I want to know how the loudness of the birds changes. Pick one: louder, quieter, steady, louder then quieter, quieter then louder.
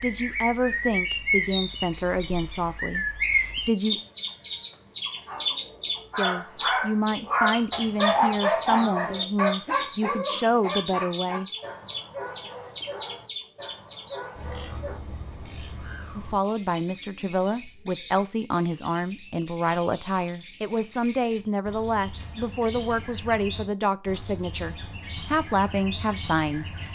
quieter.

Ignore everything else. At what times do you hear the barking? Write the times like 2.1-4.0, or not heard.
5.2-15.0.